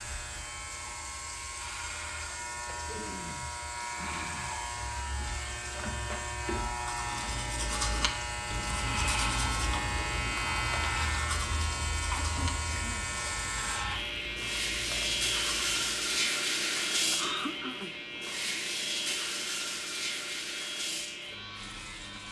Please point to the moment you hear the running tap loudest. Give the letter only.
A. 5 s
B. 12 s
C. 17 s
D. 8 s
C.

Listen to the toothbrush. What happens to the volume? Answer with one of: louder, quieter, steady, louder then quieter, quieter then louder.
quieter.